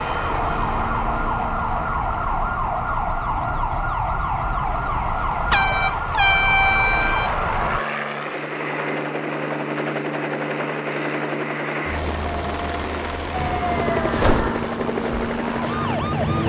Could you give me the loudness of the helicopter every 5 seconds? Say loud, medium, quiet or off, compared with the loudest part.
medium, loud, loud, loud.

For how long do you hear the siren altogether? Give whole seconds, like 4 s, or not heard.
11 s.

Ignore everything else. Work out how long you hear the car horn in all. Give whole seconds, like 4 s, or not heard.
2 s.